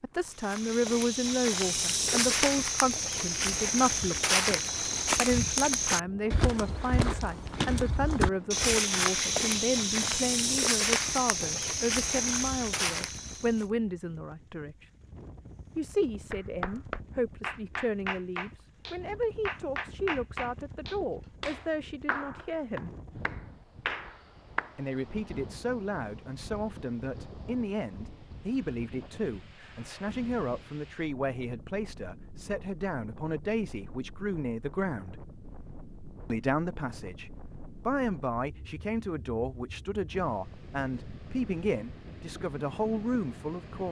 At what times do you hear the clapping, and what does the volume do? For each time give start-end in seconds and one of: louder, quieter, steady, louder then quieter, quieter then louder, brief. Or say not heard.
16.3-24.8 steady.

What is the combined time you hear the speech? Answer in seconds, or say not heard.
40 s.